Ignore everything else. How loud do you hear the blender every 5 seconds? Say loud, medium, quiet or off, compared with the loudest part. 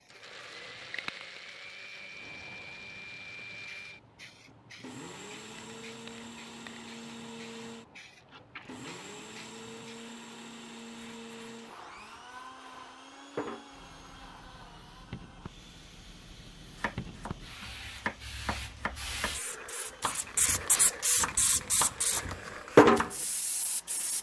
loud, loud, loud, medium, medium.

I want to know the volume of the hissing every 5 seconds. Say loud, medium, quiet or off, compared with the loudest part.
quiet, quiet, quiet, quiet, loud.